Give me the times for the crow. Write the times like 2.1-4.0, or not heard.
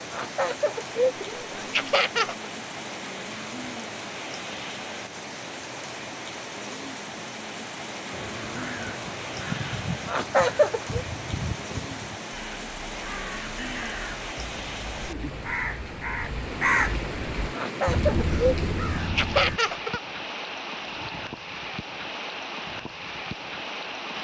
8.1-19.6.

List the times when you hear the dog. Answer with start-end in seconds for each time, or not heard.
not heard.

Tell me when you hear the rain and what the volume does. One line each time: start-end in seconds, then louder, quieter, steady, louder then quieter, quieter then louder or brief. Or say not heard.
0.0-24.1 steady.